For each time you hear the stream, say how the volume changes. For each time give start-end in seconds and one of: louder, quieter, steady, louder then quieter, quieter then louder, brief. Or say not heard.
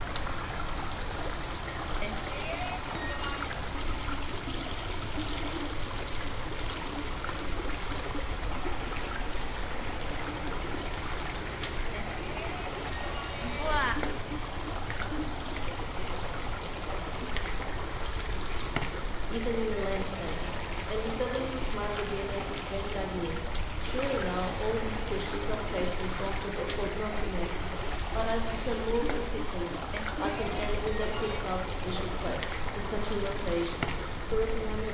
0.0-34.8 steady.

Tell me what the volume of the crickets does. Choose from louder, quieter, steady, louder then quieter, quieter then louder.
steady.